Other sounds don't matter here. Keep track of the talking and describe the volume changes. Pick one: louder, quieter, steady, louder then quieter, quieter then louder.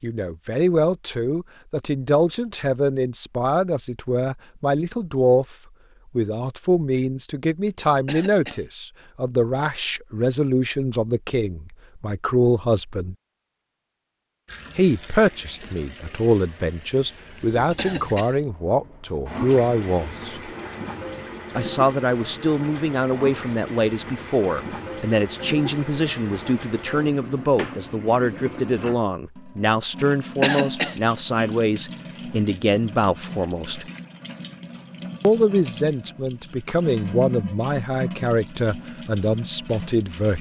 steady.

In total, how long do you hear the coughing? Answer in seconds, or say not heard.
3 s.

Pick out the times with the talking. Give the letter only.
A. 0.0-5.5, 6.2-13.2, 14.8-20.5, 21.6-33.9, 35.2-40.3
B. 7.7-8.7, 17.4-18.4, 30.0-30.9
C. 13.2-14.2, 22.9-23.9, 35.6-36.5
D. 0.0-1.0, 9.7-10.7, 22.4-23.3
A.